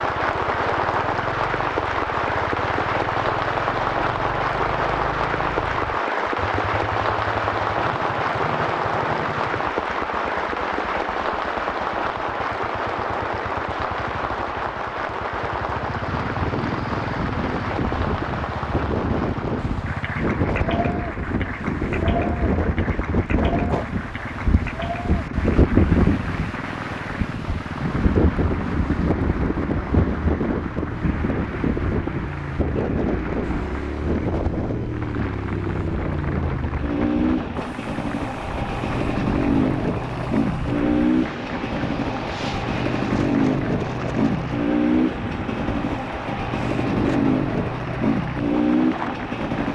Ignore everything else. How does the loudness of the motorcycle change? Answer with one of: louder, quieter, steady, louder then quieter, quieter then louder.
louder.